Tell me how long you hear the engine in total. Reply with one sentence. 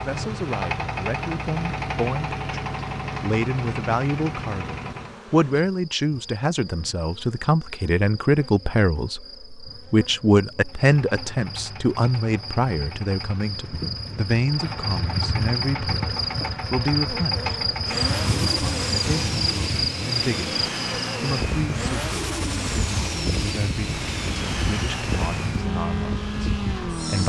The engine can be heard for 22 seconds in total.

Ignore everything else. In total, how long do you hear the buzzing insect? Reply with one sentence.
You can hear the buzzing insect for 27 seconds altogether.